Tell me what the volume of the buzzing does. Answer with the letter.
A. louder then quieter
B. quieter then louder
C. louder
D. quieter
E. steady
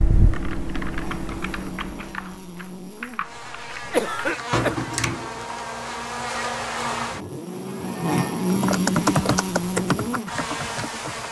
C.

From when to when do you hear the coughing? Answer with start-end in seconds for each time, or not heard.
3.9-4.8.